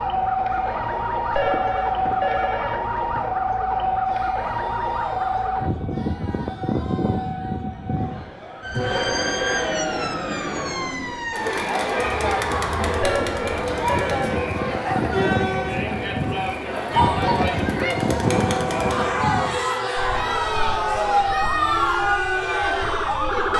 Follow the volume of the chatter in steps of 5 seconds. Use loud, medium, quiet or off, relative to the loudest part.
quiet, medium, loud, loud, loud.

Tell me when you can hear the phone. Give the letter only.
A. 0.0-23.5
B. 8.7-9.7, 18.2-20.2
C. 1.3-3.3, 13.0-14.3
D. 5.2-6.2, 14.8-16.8
C.